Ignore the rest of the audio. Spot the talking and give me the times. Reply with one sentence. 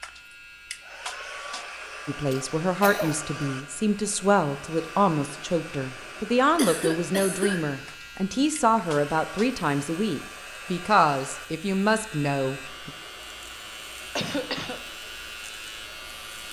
You can hear the talking from 2.0 to 12.9 s.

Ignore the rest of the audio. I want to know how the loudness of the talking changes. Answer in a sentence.
The loudness of the talking stays about the same.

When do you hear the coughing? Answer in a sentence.
The coughing can be heard from 2.3 to 3.2 s, from 6.5 to 7.7 s and from 14.2 to 14.8 s.